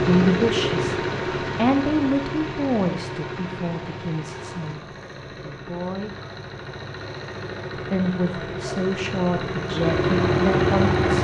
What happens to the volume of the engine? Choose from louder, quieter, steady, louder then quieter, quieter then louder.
quieter then louder.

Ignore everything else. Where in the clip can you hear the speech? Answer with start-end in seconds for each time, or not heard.
0.0-6.2, 7.8-11.1.